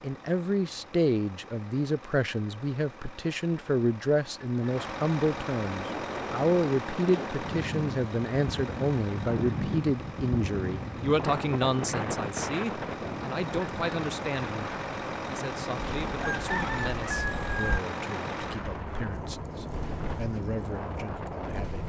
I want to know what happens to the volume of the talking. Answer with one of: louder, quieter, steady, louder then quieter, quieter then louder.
quieter.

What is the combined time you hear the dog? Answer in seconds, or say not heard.
not heard.